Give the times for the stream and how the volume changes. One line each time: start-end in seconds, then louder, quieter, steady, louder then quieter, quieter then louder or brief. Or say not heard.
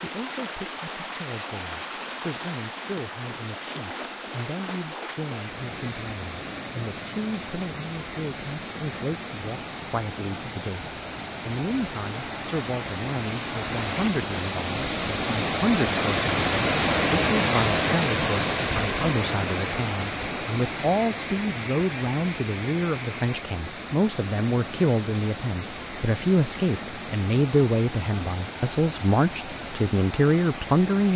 0.0-31.1 louder then quieter.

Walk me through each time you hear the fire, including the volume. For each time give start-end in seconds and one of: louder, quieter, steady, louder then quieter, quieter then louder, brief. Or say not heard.
not heard.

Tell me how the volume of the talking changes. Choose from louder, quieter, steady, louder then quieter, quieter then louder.
louder.